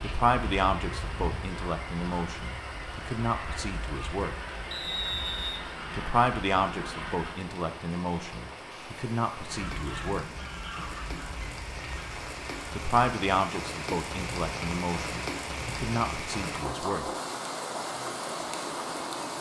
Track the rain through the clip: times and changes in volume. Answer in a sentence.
The rain can be heard from 0.0 to 19.3 s, getting louder.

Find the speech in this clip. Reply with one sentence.
You can hear the speech from 0.0 to 4.3 s, from 6.0 to 10.2 s and from 12.7 to 17.1 s.